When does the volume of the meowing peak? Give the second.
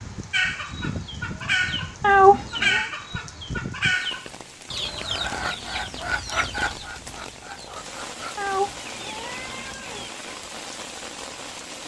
2 s.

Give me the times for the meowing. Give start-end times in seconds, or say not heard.
2.0-2.9, 8.3-10.1.